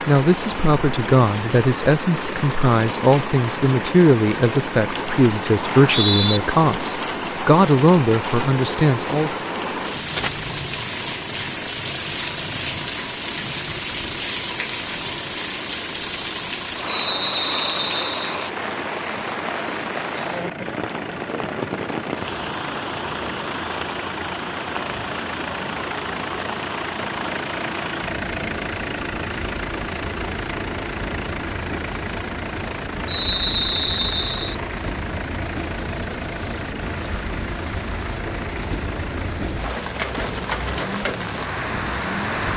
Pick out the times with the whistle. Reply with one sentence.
The whistle can be heard from 5.7 to 6.4 s, from 16.9 to 18.4 s and from 33.0 to 34.5 s.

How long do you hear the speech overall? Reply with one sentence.
The speech can be heard for 9 seconds in total.